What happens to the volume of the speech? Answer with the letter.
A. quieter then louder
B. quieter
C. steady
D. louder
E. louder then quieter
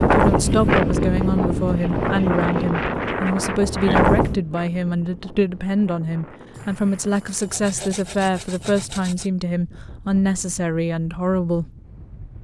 C.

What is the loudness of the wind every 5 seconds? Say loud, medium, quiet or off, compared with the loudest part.
loud, quiet, quiet.